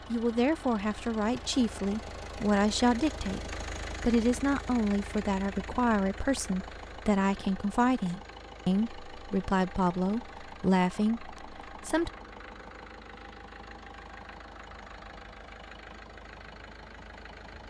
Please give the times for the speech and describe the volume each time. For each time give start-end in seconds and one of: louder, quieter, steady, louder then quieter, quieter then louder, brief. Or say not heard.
0.1-12.1 steady.